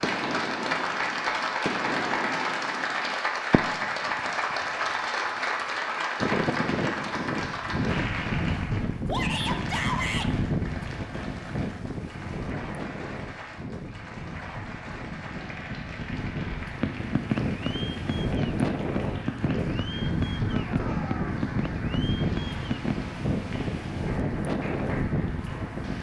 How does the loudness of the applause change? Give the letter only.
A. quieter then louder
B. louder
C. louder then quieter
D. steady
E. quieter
E.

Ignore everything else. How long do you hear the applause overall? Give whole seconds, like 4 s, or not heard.
26 s.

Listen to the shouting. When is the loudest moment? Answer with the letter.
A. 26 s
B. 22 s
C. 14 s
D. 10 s
D.